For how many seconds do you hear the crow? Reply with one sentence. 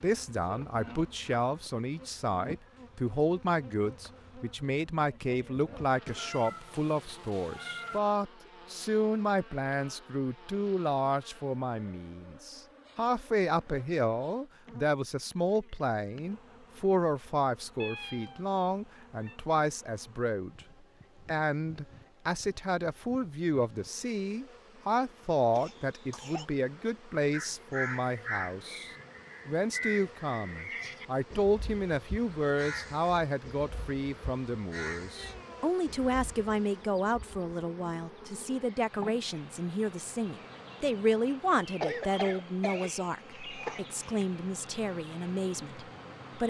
The crow can be heard for 9 seconds in total.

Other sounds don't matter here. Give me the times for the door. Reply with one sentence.
The door can't be heard in this clip.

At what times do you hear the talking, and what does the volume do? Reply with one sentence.
You can hear the talking from 0.0 to 20.6 s, at a steady volume; and from 21.2 to 46.4 s, at a steady volume.